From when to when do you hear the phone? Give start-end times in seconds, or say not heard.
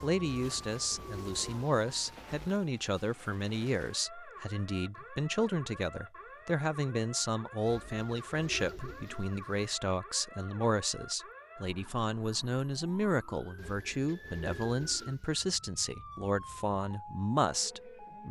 not heard.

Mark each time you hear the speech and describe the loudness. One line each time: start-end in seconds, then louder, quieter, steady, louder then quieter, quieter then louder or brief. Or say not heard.
0.0-18.2 steady.